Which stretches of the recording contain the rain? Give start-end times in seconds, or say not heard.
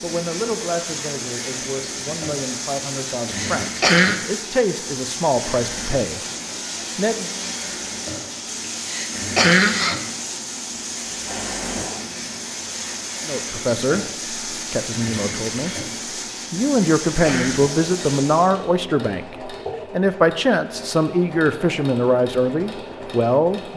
0.0-18.6.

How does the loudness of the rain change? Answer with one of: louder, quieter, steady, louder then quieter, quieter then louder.
steady.